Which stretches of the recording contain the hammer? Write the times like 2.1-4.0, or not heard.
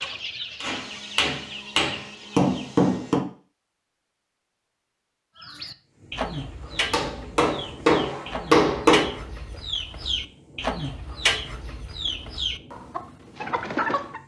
0.0-3.2, 6.7-9.6.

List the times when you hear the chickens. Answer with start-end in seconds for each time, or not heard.
0.0-2.8, 5.4-14.2.